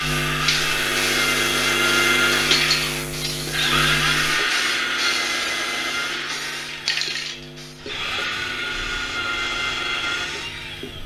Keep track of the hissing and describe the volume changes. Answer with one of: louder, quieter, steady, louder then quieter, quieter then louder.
quieter.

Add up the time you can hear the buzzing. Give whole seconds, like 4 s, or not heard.
11 s.